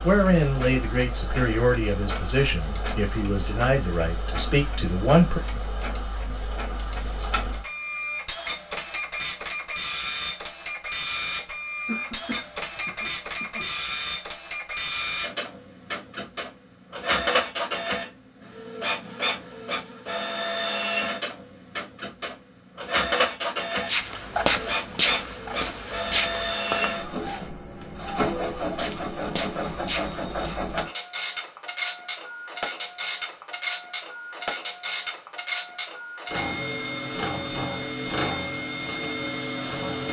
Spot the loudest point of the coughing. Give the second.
12 s.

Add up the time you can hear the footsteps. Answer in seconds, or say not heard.
7 s.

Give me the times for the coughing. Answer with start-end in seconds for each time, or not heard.
11.8-13.7.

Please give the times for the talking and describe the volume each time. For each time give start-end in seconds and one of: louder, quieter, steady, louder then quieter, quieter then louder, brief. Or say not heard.
0.0-5.4 steady.